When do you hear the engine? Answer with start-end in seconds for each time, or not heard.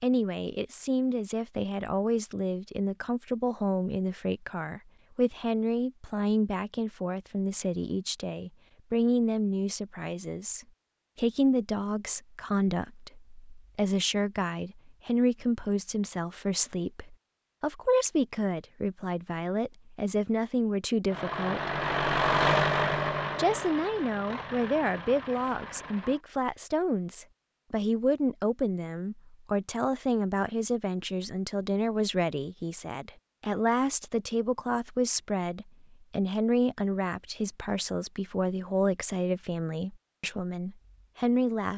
21.1-26.2.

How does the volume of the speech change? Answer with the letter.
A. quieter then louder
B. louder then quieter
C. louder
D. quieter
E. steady
E.